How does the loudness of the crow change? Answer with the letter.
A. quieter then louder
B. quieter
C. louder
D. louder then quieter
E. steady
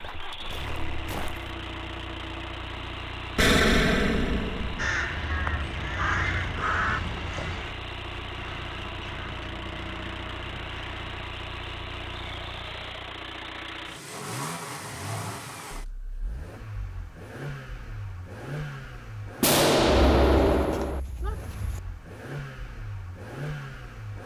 B.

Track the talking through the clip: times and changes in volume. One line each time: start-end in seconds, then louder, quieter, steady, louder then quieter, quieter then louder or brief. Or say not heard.
not heard.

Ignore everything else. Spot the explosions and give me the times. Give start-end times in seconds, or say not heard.
3.4-4.8, 19.4-21.0.